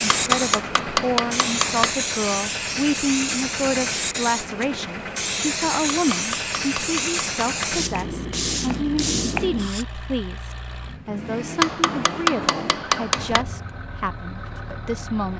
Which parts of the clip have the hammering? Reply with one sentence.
The hammering can be heard from 0.1 to 1.9 s, from 5.9 to 7.7 s and from 11.6 to 13.4 s.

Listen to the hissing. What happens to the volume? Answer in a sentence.
The loudness of the hissing stays about the same.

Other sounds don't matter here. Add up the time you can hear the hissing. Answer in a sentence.
You can hear the hissing for 10 seconds altogether.